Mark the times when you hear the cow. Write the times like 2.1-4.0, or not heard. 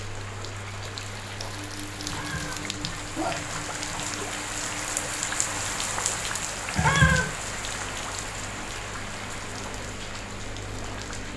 not heard.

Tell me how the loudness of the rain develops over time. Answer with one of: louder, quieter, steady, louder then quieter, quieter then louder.
louder then quieter.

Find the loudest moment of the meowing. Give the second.
7 s.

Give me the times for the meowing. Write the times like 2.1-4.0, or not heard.
2.0-4.0, 6.8-7.3.